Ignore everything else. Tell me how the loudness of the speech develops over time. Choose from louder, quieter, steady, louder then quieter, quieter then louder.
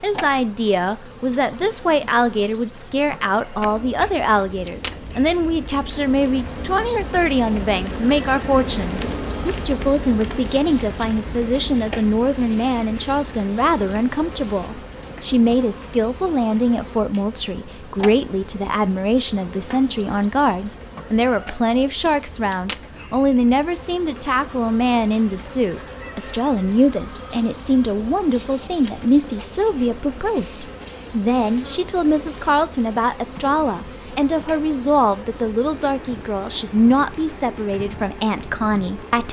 steady.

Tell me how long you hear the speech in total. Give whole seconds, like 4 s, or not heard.
39 s.